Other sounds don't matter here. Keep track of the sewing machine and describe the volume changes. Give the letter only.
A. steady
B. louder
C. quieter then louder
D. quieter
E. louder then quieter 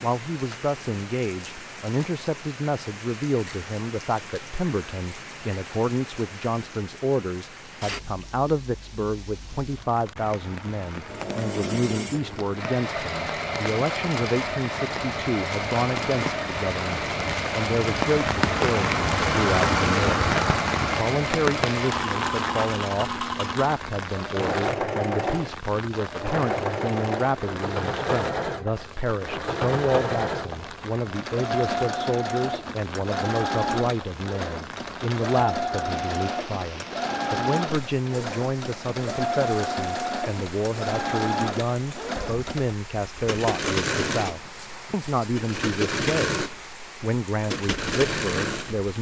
A.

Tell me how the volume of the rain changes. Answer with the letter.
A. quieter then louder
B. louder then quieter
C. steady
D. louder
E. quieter
B.